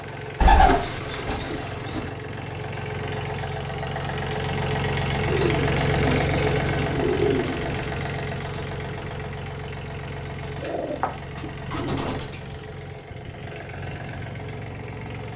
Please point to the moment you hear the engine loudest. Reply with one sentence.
The volume of the engine peaks at 6 seconds.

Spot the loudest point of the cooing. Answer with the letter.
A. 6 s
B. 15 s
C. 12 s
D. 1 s
D.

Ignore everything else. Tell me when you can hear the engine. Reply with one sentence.
You can hear the engine from 0.0 to 15.3 s.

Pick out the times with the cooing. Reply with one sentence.
The cooing can be heard from 0.4 to 2.1 s, from 5.2 to 7.8 s and from 10.6 to 12.4 s.